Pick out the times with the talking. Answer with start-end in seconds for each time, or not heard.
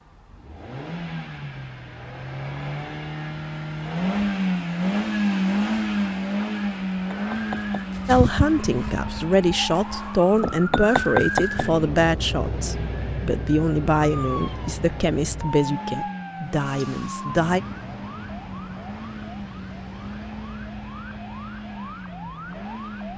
8.1-17.6.